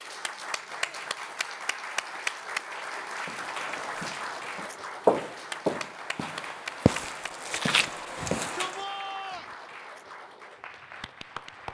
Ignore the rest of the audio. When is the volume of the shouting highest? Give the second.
9 s.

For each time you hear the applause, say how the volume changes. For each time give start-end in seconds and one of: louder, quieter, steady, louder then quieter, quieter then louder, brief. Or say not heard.
0.0-11.6 quieter.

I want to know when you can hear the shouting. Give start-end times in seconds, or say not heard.
0.7-1.1, 8.2-9.4.